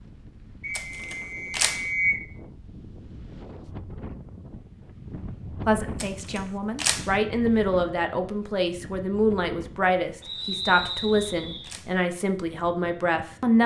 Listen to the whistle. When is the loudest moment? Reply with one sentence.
The volume of the whistle peaks at 2 seconds.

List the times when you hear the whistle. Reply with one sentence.
You can hear the whistle from 0.6 to 2.2 s and from 10.2 to 11.7 s.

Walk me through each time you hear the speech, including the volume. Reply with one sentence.
The speech can be heard from 5.7 to 13.6 s, at a steady volume.